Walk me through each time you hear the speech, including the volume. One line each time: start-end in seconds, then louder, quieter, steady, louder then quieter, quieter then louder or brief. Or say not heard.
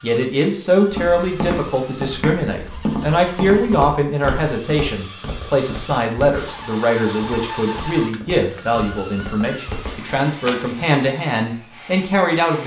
0.0-12.6 steady.